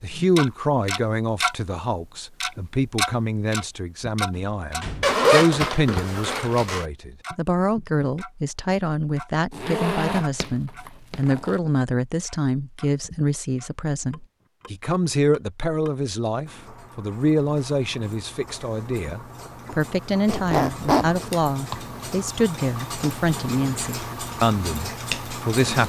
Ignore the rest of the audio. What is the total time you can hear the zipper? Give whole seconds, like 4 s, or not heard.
4 s.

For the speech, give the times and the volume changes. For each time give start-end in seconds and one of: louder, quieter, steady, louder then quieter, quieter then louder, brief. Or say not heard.
0.0-25.8 steady.